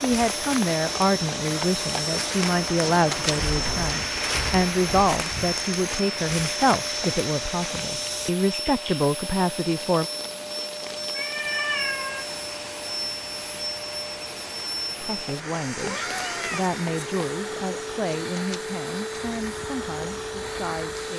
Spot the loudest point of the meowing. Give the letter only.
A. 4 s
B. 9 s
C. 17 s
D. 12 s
D.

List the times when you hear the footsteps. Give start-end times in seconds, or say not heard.
0.0-8.3.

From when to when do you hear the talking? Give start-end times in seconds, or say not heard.
0.0-10.1, 15.0-21.1.